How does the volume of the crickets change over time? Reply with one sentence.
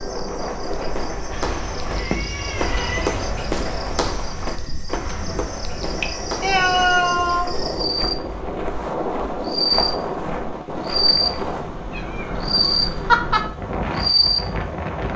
The loudness of the crickets goes up.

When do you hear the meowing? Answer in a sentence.
The meowing can be heard from 1.3 to 3.3 s, from 5.8 to 7.5 s and from 11.9 to 13.4 s.